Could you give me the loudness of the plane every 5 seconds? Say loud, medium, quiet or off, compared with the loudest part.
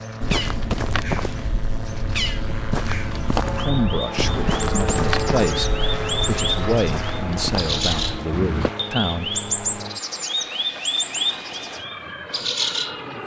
loud, loud, medium.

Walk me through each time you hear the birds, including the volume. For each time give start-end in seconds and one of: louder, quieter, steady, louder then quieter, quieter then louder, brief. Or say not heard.
0.0-13.2 louder.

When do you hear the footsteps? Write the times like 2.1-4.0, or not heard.
0.2-8.7.